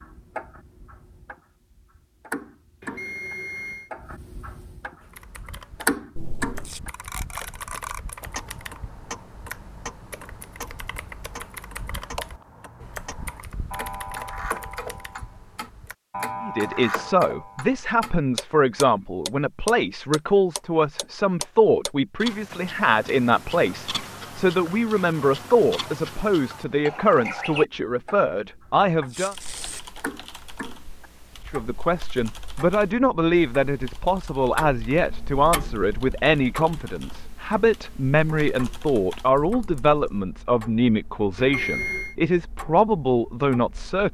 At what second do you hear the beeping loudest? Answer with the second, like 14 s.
42 s.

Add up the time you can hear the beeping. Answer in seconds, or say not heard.
2 s.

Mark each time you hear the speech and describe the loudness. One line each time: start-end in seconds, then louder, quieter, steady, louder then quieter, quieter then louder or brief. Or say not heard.
16.4-29.4 steady
31.5-44.0 steady.